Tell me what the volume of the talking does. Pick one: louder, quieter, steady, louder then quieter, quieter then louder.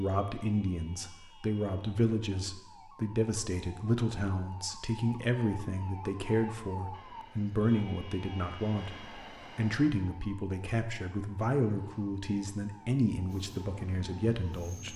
steady.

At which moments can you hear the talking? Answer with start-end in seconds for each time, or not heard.
0.0-14.9.